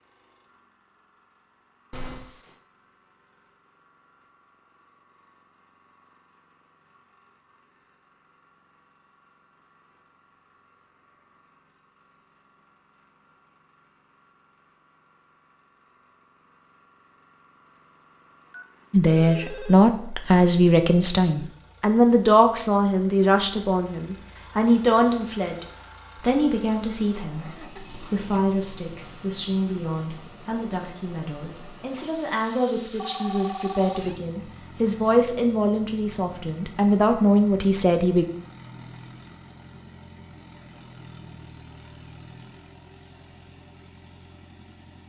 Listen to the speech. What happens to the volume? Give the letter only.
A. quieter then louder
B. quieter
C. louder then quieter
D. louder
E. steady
A.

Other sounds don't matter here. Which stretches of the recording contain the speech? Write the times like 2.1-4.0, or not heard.
18.9-38.2.